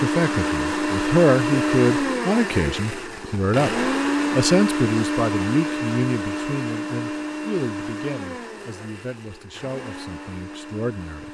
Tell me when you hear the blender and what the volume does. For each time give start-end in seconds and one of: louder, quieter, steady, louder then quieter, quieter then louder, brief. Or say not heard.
0.0-11.2 quieter.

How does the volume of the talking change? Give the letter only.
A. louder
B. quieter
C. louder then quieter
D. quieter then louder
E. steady
B.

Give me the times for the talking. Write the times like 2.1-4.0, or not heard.
0.0-11.2.